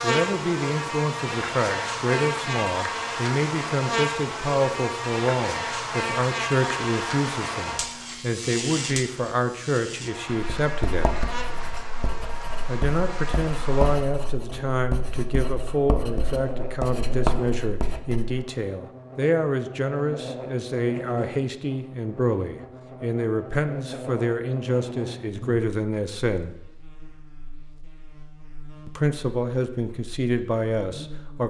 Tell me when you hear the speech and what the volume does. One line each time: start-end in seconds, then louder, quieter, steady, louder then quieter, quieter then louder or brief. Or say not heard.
0.0-11.2 steady
12.7-26.5 steady
28.9-31.4 brief.